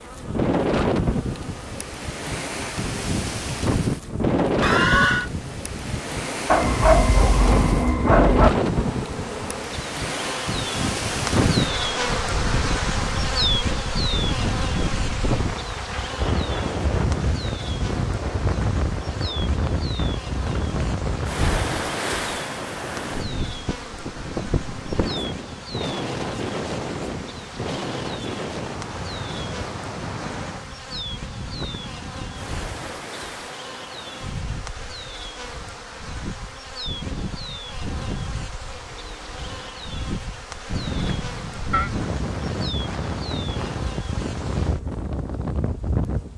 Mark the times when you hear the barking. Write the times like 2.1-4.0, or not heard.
6.5-8.5.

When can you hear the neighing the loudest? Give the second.
5 s.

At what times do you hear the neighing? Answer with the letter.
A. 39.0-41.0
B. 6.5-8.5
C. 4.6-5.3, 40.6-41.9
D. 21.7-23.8
C.